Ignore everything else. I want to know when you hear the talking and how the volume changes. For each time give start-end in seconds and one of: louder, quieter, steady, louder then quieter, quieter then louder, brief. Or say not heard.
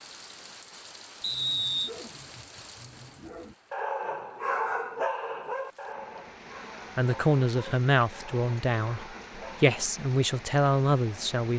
7.0-11.5 quieter then louder.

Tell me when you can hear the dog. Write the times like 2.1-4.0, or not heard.
1.2-9.8.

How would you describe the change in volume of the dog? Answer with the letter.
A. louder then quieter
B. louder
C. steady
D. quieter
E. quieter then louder
A.